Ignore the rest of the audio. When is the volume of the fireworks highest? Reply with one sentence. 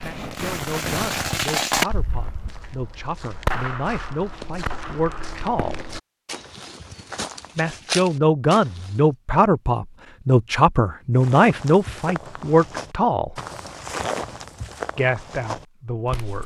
The volume of the fireworks peaks at 2 seconds.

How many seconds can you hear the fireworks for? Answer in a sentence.
The fireworks can be heard for 6 seconds in total.